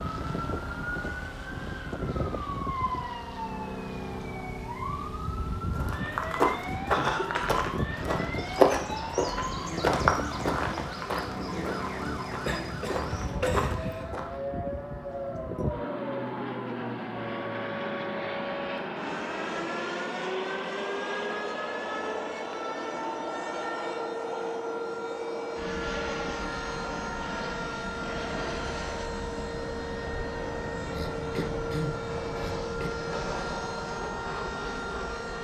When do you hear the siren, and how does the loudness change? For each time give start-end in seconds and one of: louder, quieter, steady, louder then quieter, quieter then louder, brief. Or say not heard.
0.1-35.3 steady.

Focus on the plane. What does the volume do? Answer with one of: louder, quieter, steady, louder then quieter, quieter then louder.
steady.